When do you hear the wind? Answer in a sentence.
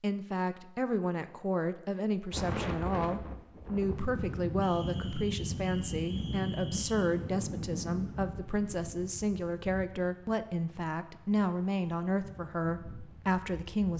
The wind can be heard from 2.3 to 13.9 s.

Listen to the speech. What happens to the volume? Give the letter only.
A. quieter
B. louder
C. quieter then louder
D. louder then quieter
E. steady
E.